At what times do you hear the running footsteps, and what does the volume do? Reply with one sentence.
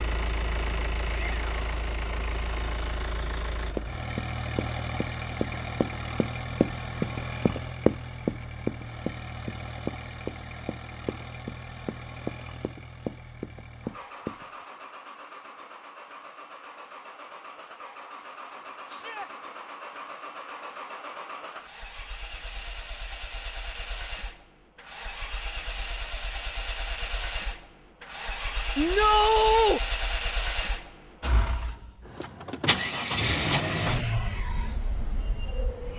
The running footsteps can be heard from 3.8 to 14.4 s, getting louder then quieter.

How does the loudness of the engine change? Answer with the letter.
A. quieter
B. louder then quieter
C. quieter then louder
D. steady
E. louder
C.